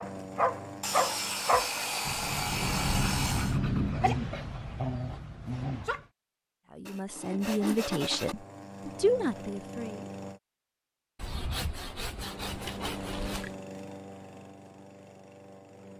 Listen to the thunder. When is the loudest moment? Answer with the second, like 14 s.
4 s.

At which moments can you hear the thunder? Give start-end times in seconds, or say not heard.
2.0-4.0.